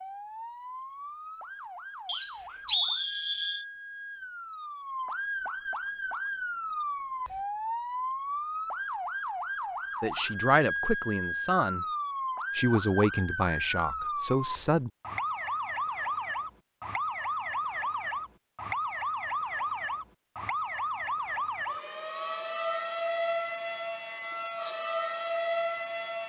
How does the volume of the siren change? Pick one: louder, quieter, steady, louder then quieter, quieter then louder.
louder.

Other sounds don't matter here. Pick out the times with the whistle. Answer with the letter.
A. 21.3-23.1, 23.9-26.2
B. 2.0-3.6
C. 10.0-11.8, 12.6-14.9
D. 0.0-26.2
B.